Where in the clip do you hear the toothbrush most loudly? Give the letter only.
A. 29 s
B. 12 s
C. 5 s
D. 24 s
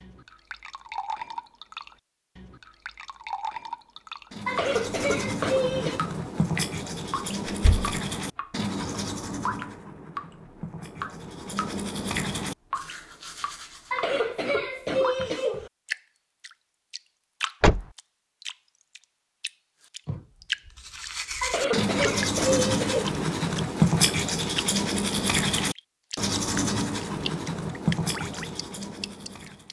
D.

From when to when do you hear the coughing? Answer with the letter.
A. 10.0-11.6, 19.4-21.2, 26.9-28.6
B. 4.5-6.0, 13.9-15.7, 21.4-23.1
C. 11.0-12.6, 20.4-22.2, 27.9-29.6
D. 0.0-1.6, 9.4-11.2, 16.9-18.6
B.